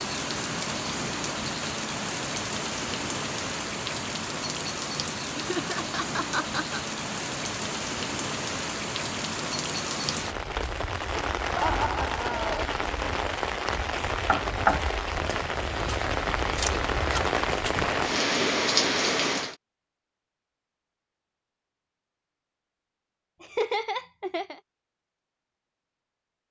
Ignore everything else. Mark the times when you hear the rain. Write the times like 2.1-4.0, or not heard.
0.0-19.6.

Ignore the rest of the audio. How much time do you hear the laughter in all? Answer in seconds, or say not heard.
4 s.